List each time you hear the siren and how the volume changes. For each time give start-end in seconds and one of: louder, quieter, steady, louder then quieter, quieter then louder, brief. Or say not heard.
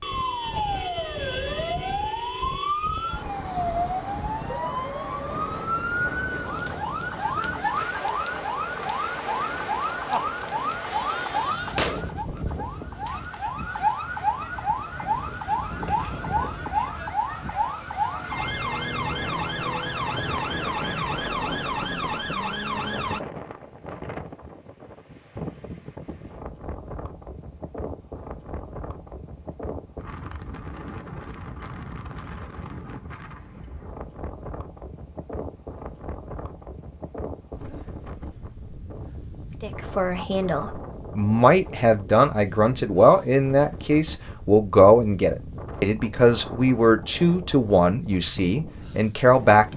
0.0-23.2 steady.